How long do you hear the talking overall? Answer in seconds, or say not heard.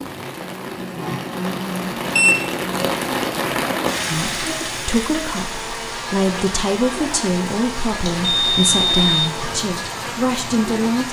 7 s.